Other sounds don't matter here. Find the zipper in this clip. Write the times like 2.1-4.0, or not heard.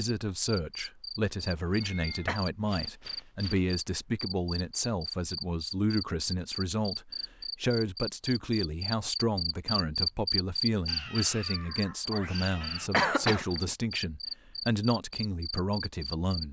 not heard.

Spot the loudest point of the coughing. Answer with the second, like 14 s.
13 s.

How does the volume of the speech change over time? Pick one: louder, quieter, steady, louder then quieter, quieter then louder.
steady.